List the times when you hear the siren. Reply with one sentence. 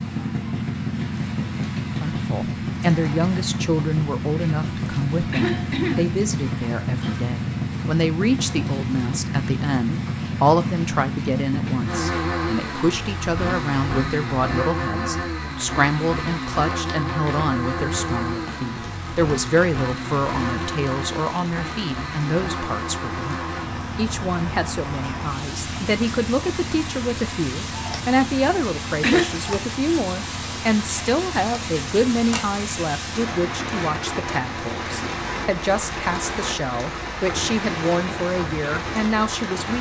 The siren can't be heard in this clip.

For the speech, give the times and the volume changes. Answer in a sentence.
The speech can be heard from 1.9 to 39.7 s, at a steady volume.